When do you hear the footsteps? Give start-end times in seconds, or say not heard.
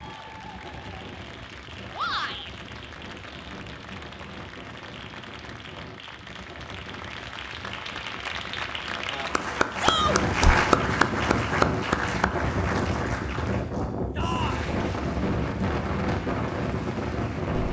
not heard.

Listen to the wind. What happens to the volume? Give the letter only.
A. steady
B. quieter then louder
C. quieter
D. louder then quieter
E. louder
E.